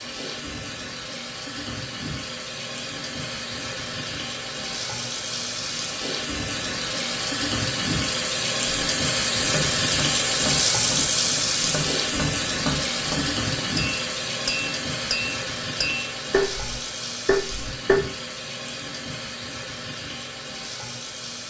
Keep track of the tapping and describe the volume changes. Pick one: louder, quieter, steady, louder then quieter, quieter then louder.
louder.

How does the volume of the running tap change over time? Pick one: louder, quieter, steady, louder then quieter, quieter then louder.
louder then quieter.